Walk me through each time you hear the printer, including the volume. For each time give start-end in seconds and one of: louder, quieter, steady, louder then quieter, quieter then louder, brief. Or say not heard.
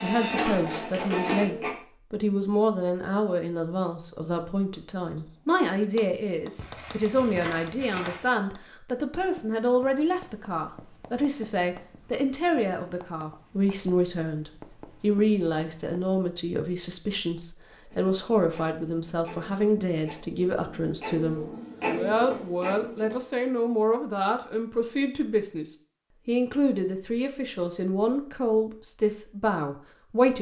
0.0-1.8 brief
17.9-23.4 louder.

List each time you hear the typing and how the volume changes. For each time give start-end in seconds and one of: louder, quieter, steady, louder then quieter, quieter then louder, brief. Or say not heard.
not heard.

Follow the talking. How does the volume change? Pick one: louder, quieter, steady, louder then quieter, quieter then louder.
steady.